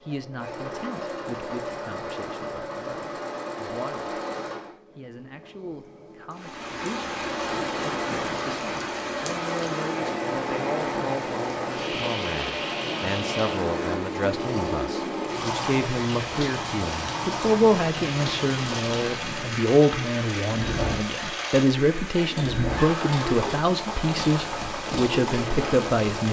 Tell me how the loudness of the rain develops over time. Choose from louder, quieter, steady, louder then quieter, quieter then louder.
steady.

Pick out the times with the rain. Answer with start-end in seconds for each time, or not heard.
6.3-26.2.